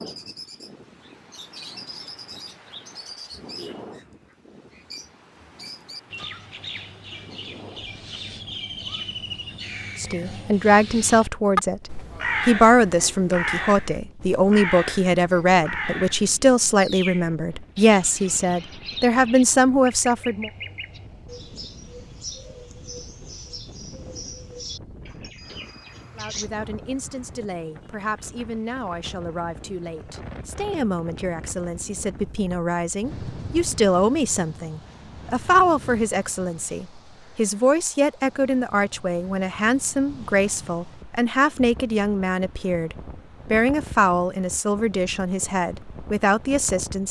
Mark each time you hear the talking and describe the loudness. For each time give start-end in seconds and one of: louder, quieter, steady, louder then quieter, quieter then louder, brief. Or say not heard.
9.9-20.5 steady
26.1-47.0 louder.